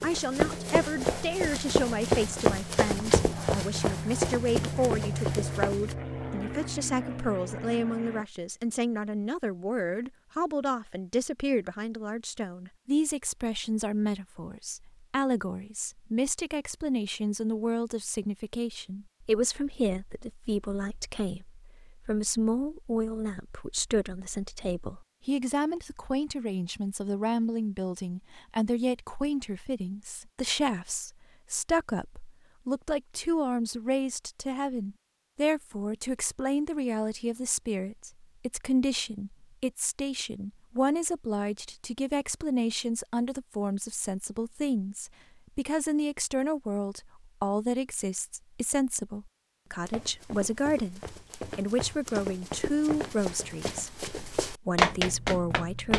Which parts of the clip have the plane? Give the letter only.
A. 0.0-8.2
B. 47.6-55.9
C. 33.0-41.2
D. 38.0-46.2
A.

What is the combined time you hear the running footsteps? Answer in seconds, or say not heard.
12 s.